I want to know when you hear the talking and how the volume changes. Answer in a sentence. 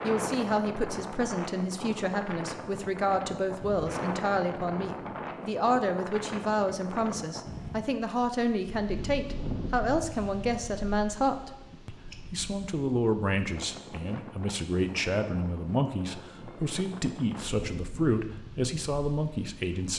The talking can be heard from 0.0 to 19.9 s, at a steady volume.